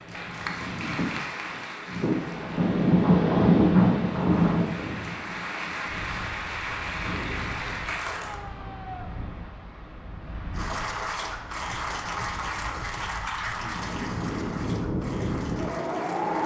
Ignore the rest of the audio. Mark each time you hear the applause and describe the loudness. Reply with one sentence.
The applause can be heard from 0.0 to 8.4 s, getting quieter then louder; and from 10.5 to 16.4 s, getting quieter.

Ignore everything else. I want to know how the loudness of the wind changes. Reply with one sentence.
The volume of the wind goes down, then up.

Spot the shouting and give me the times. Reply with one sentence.
The shouting can be heard from 8.2 to 9.1 s.